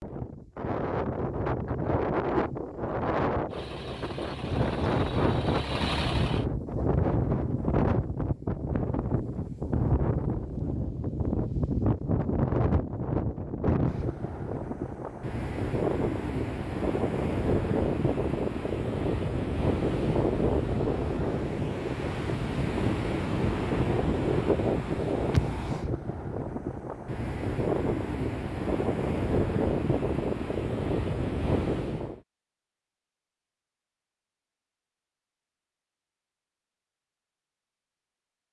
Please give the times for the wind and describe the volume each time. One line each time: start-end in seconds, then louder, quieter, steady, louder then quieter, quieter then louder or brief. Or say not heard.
0.0-32.2 steady.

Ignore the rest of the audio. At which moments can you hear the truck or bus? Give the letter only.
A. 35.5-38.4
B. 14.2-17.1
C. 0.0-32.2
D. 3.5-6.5
D.